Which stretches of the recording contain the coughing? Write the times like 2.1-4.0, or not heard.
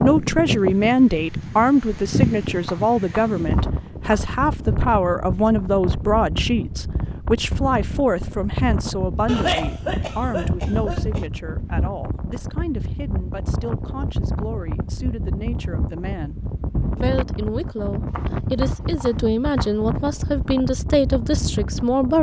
9.2-11.2.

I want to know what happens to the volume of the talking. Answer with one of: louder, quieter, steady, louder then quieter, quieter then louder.
quieter then louder.